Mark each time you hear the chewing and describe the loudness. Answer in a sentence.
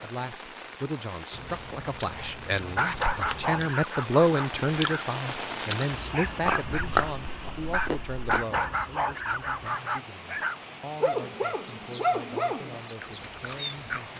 You can hear the chewing from 1.3 to 8.4 s, getting louder; and briefly from 13.0 to 14.1 s.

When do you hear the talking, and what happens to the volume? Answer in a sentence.
You can hear the talking from 0.0 to 14.1 s, getting louder then quieter.